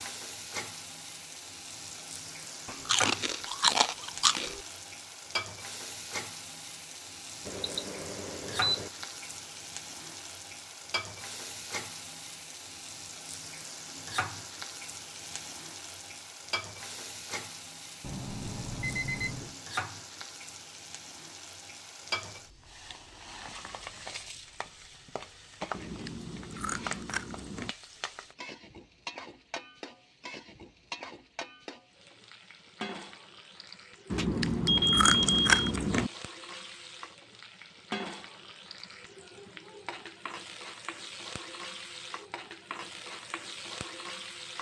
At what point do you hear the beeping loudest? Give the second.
35 s.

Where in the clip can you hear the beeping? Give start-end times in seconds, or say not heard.
7.5-8.9, 18.0-19.6, 34.1-35.7.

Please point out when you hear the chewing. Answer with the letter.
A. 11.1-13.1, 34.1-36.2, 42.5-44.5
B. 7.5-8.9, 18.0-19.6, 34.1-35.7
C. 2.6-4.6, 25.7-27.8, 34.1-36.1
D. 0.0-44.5
C.